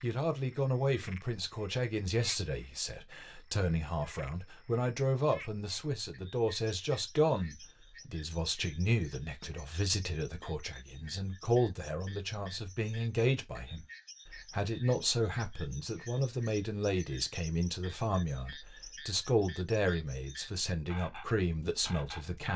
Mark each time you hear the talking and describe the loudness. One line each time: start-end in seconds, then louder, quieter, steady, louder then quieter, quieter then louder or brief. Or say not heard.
0.0-22.5 steady.